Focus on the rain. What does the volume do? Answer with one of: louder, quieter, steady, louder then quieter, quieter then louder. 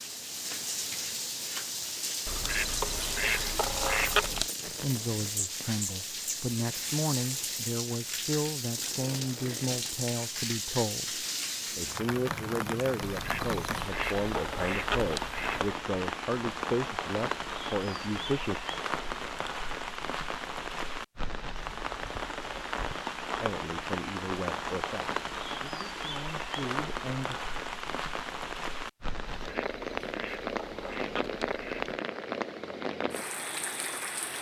steady.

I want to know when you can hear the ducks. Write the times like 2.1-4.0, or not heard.
2.2-4.5, 13.0-15.8, 29.3-32.0.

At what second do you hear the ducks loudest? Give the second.
4 s.